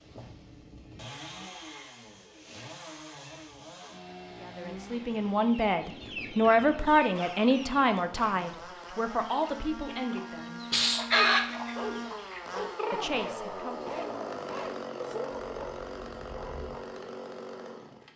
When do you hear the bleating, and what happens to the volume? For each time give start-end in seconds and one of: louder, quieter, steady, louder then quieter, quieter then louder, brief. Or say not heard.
not heard.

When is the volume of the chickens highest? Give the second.
11 s.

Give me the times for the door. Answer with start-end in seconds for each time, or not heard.
not heard.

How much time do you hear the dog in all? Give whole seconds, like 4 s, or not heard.
6 s.